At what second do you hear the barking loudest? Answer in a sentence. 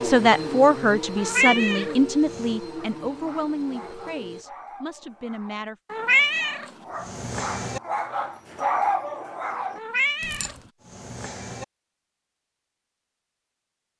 The volume of the barking peaks at 9 seconds.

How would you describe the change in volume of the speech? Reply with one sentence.
The volume of the speech goes down.